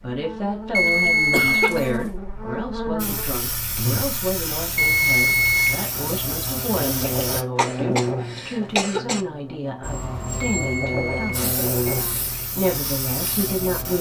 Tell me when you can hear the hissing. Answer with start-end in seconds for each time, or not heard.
3.0-7.5, 9.8-13.9.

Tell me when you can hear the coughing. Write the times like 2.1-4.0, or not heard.
0.8-1.9, 7.5-9.2.